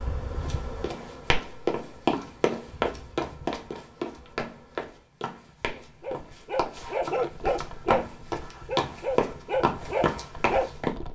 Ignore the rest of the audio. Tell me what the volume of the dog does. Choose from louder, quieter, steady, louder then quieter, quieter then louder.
quieter then louder.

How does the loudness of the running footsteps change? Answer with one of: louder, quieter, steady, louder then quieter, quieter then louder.
quieter then louder.